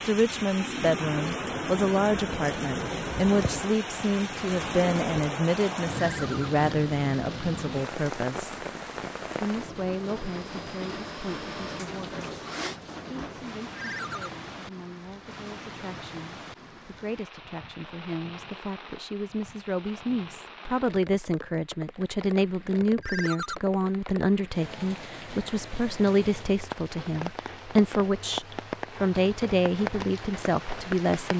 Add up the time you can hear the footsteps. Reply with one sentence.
You can't hear the footsteps here.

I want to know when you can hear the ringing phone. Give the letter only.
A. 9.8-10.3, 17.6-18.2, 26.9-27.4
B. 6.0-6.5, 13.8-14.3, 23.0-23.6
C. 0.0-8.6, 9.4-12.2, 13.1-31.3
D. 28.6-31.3
B.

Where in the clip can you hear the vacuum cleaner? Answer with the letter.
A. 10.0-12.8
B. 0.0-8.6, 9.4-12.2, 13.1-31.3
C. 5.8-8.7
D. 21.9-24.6
A.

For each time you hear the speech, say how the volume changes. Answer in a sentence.
You can hear the speech from 0.0 to 8.6 s, at a steady volume; briefly from 9.4 to 12.2 s; and from 13.1 to 31.3 s, getting louder.